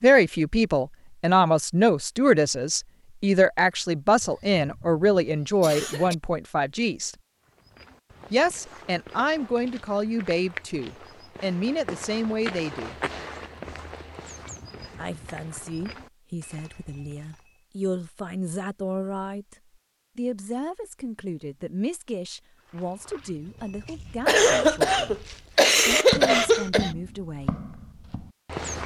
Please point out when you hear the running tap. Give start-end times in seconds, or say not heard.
not heard.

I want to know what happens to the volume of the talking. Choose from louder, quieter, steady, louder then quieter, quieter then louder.
quieter.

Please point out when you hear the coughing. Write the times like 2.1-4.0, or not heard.
4.2-6.2, 24.2-26.9.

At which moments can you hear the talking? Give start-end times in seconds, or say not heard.
0.0-7.2, 8.3-12.9, 14.9-19.6, 20.1-27.6.